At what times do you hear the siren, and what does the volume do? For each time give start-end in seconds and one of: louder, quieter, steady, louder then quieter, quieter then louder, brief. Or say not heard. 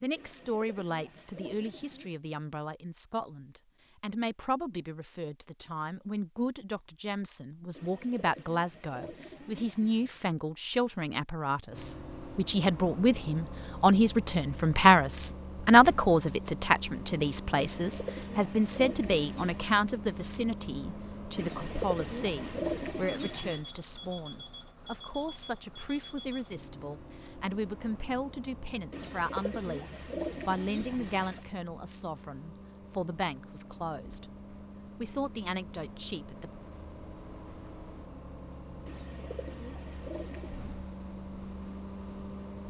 not heard.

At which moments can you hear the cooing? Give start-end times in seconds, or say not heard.
0.1-2.1, 7.8-10.2, 17.6-19.7, 21.4-23.6, 28.9-31.4, 38.9-40.8.